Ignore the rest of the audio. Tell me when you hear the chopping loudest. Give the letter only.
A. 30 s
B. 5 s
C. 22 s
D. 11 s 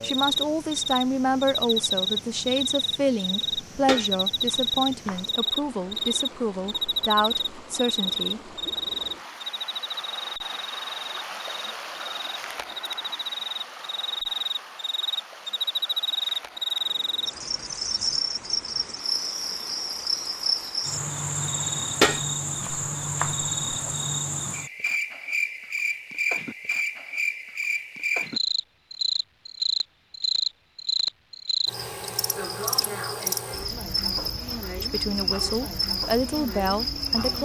C.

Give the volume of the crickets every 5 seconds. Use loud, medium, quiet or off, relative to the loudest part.
loud, loud, medium, loud, loud, loud, loud, loud.